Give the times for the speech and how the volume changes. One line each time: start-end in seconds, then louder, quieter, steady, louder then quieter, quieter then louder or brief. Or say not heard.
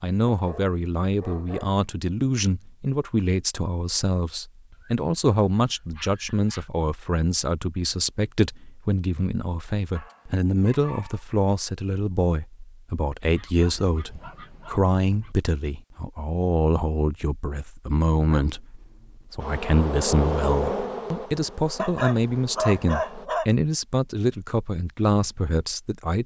0.0-26.2 steady.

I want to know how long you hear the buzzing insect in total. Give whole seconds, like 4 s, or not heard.
4 s.